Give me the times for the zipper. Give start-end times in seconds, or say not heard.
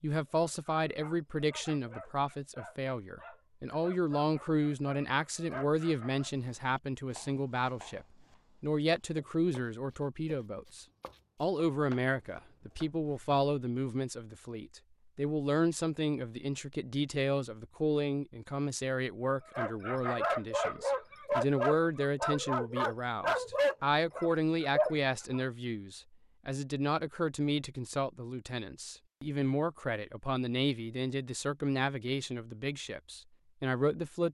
not heard.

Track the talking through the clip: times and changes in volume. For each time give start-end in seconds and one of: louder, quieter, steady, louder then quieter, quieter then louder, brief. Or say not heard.
0.0-34.3 steady.